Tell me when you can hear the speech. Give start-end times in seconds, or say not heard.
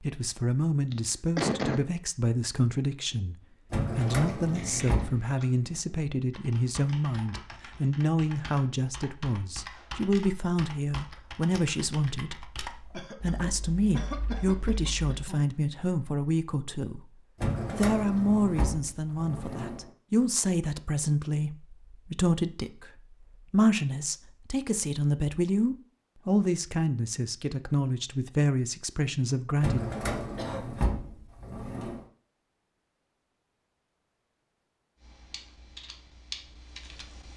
0.0-29.8.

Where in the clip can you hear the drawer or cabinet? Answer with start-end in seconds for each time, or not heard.
3.7-5.2, 17.4-19.9, 29.6-32.0.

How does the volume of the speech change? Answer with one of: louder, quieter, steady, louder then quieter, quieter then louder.
steady.